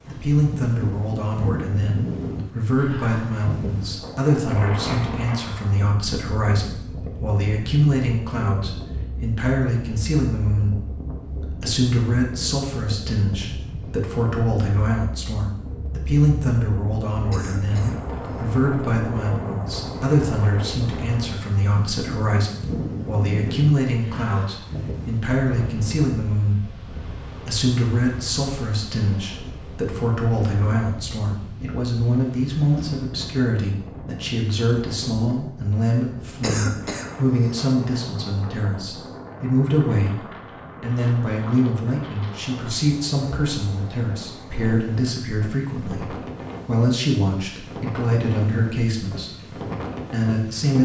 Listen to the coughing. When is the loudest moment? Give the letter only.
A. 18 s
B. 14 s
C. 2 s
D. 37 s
D.